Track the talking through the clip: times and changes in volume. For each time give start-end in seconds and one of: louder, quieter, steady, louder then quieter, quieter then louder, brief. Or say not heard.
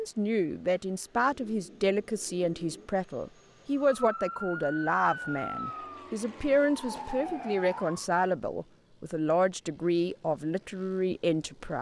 0.0-11.7 steady.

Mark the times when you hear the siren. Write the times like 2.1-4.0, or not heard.
3.8-8.1.